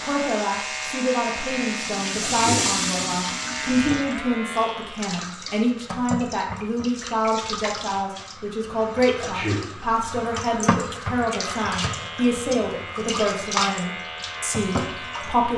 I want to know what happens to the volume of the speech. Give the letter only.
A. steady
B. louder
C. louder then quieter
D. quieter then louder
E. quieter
A.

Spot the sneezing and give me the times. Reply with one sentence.
You can hear the sneezing from 2.2 to 2.7 s and from 9.2 to 9.7 s.